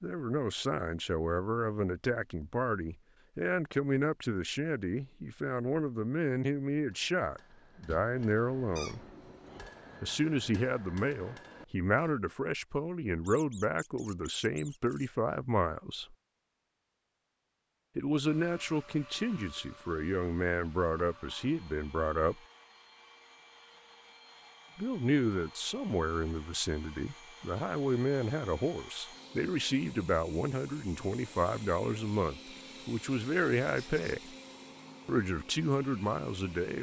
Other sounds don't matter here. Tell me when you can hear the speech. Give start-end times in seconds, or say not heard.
0.0-9.0, 10.0-16.1, 17.9-22.4, 24.8-34.4, 35.0-36.7.